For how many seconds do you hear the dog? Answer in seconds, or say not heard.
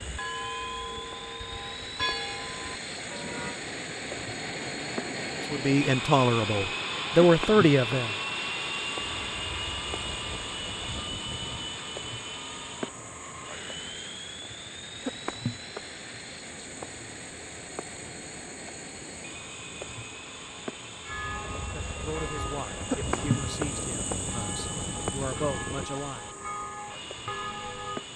not heard.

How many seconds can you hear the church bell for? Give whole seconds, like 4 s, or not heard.
11 s.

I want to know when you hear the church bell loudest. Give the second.
2 s.